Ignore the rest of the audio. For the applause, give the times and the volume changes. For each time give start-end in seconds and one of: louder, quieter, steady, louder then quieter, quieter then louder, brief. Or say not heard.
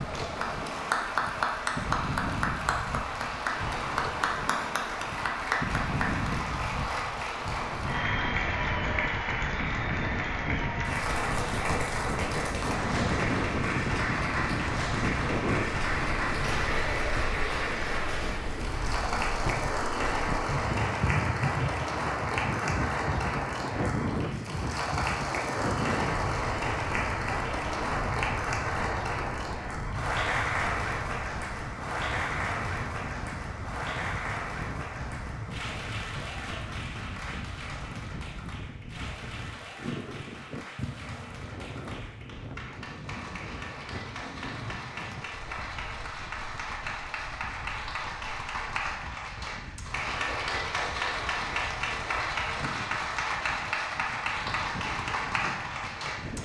0.0-56.3 quieter then louder.